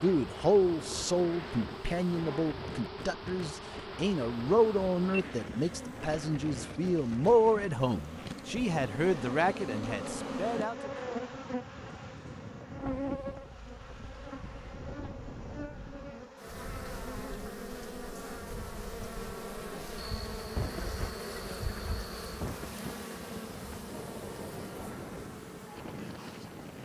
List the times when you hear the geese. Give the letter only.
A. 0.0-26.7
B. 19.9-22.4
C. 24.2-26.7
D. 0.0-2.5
B.